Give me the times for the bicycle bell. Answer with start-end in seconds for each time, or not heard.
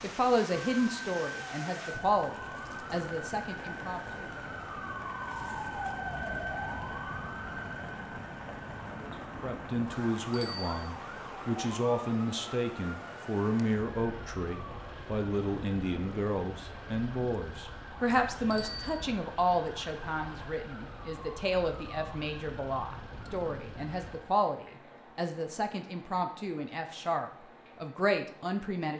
10.3-10.8, 18.5-19.0.